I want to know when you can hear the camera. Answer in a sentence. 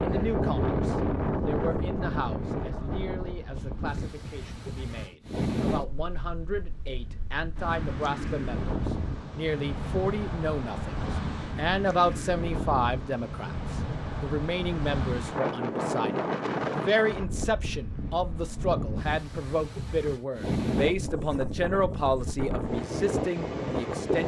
The camera can't be heard in this clip.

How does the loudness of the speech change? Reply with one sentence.
The volume of the speech goes up.